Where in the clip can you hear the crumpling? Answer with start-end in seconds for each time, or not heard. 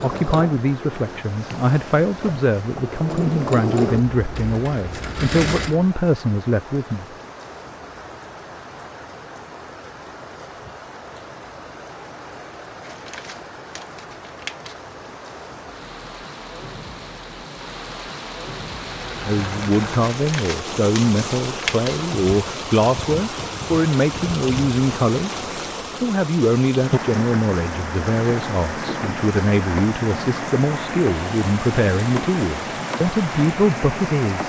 12.8-14.8, 20.0-22.0.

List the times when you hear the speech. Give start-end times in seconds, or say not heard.
0.0-7.0, 19.2-34.4.